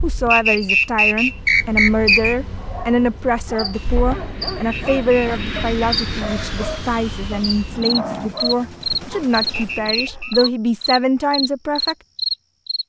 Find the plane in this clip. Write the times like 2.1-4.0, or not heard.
3.7-8.3.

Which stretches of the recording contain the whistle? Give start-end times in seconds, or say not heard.
0.3-2.4, 4.7-5.3, 9.5-10.3.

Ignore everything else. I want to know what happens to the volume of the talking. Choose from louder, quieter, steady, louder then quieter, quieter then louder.
steady.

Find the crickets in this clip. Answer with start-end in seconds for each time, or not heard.
0.0-12.8.